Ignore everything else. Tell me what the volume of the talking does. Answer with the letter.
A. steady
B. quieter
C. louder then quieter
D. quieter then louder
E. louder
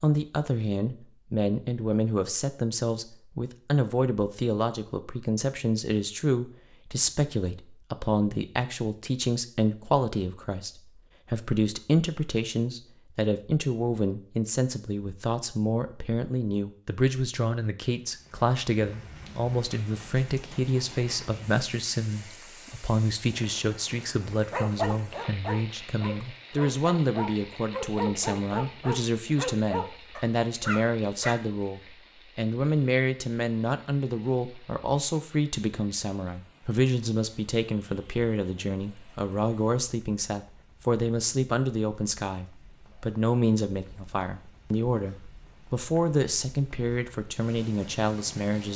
A.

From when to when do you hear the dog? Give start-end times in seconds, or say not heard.
24.5-31.4.